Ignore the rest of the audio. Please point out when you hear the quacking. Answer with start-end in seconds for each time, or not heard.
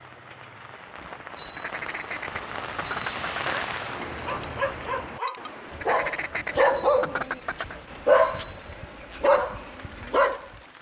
1.6-3.6, 5.8-7.8.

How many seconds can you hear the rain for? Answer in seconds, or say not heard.
11 s.